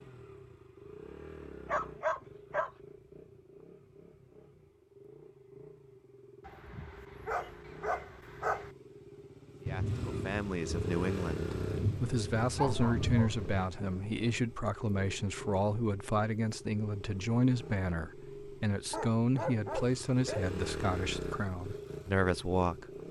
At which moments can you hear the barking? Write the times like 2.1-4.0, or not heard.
1.6-2.7, 6.5-8.7, 12.6-13.4, 18.9-20.4.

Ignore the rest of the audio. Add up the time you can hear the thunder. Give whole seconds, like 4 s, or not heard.
4 s.